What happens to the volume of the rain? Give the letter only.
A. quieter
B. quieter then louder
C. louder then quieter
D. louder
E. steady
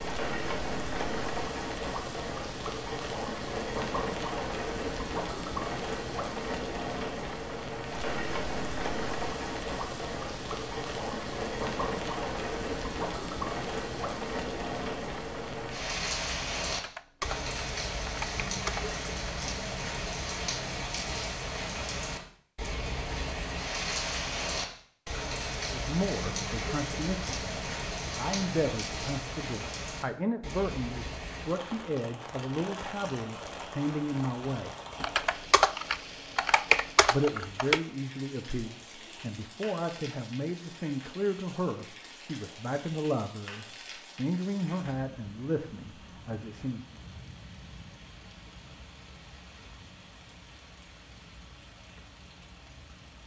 A.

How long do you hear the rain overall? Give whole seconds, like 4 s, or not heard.
53 s.